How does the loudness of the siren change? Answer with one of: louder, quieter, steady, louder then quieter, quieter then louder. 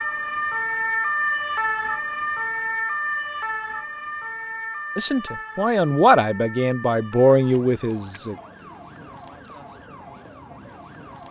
quieter.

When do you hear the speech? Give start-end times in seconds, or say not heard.
5.0-8.3.